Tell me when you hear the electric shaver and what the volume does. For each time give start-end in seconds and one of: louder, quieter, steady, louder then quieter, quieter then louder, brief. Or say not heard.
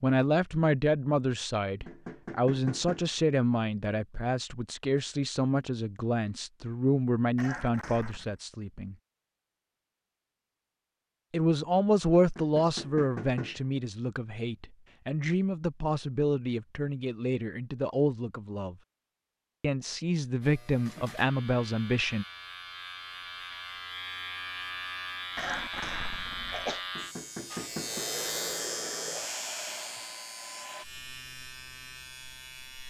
20.4-32.8 louder then quieter.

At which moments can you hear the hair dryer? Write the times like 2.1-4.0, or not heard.
27.4-30.9.